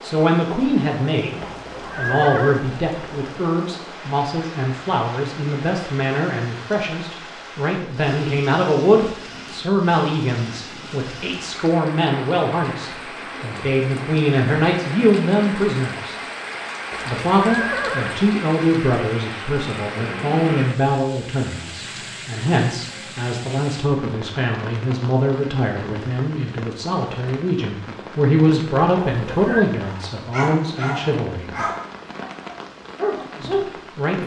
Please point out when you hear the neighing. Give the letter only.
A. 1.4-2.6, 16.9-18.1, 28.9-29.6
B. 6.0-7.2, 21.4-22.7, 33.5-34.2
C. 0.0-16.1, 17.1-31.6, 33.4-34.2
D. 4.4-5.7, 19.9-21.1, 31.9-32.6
A.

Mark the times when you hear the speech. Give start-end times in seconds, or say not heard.
0.0-16.1, 17.1-31.6, 33.4-34.2.